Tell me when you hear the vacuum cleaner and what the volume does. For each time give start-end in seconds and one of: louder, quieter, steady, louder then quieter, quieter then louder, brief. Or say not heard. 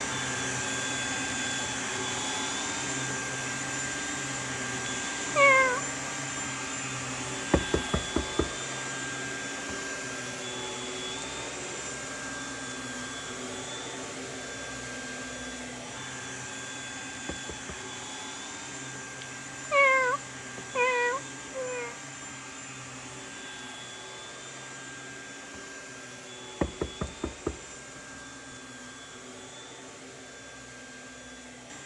0.0-31.8 quieter.